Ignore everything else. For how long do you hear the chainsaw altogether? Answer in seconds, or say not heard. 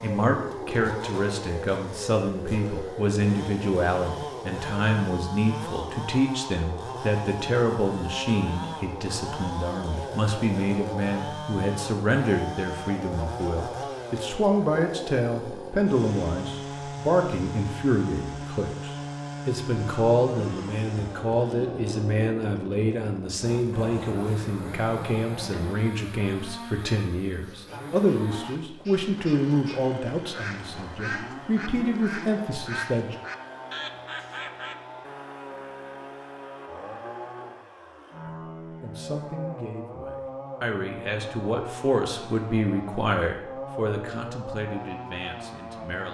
46 s.